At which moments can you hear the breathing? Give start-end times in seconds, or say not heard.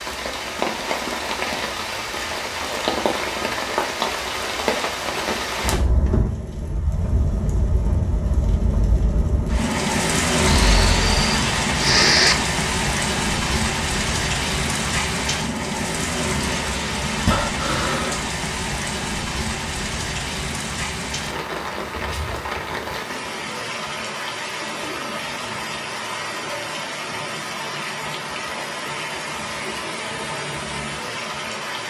10.3-12.3, 17.2-18.2.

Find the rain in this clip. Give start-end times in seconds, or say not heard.
0.0-31.8.